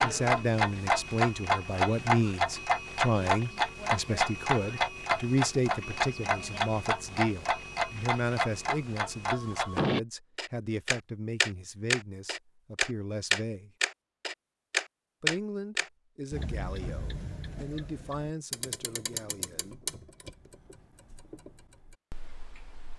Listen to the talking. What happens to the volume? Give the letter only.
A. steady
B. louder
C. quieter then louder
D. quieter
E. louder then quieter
D.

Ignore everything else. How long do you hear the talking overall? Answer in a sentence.
You can hear the talking for 18 seconds altogether.